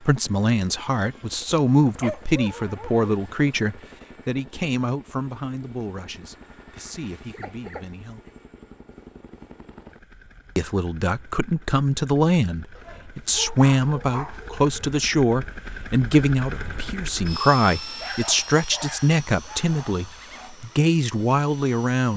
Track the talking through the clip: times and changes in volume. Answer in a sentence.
You can hear the talking from 0.0 to 8.2 s, getting quieter; and from 10.6 to 22.1 s, at a steady volume.